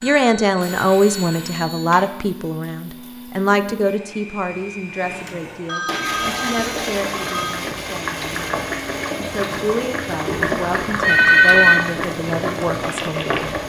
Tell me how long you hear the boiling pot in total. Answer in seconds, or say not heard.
8 s.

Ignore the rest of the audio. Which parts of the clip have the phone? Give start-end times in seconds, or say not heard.
0.0-2.0, 5.7-7.6, 10.2-11.8.